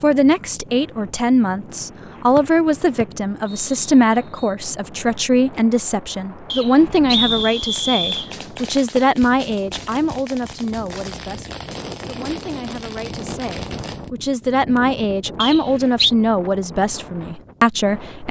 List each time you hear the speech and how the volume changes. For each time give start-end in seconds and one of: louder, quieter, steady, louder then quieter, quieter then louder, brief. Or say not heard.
0.0-18.2 quieter then louder.